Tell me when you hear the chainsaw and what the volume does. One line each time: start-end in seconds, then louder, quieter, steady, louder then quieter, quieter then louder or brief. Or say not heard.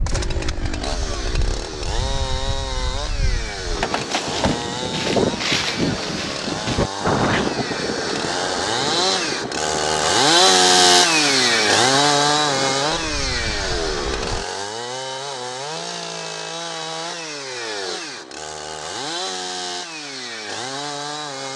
0.0-21.5 louder then quieter.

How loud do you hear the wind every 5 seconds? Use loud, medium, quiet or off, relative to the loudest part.
medium, loud, medium, off, off.